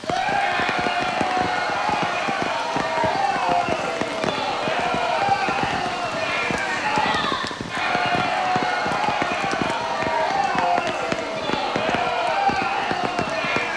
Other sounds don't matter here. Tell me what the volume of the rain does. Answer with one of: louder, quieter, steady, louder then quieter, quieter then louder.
steady.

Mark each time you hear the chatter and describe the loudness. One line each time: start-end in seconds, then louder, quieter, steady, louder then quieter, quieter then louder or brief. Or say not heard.
0.0-13.7 steady.